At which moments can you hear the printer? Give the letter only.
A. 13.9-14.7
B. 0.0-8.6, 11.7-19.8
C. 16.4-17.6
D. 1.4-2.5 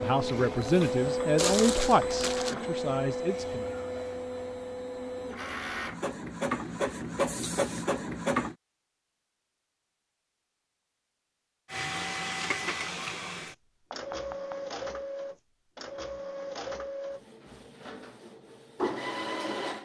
B.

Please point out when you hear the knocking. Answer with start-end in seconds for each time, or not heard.
13.9-14.7.